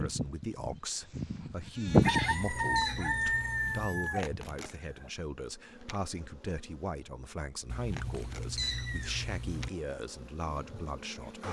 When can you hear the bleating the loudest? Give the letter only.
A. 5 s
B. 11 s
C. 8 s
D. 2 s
D.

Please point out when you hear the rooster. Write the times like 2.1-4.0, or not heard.
1.9-5.1.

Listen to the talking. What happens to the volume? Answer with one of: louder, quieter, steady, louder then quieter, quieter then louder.
steady.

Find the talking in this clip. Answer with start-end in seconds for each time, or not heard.
0.0-11.4.